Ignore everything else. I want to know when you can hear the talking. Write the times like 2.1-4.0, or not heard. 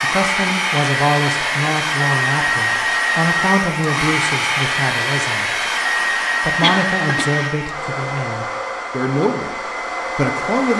0.0-5.7, 6.4-10.7.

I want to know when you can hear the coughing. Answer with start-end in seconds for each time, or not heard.
6.6-7.5.